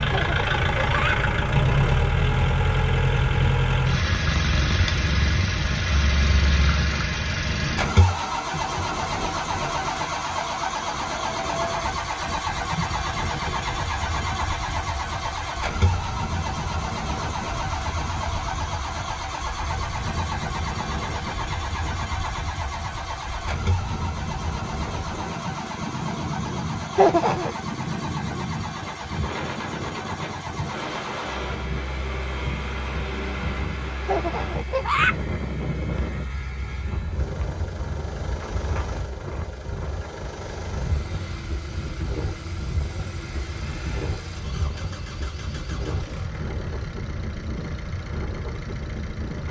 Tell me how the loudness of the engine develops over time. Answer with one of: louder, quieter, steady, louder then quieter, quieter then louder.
quieter.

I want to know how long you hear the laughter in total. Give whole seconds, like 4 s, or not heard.
3 s.